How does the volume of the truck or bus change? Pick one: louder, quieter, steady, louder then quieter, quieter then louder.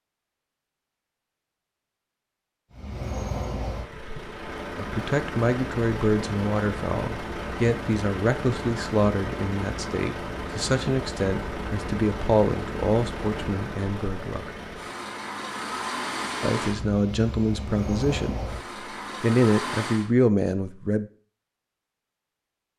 steady.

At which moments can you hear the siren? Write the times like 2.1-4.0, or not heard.
not heard.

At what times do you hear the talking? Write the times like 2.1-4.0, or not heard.
4.8-14.5, 16.4-18.6, 19.2-21.1.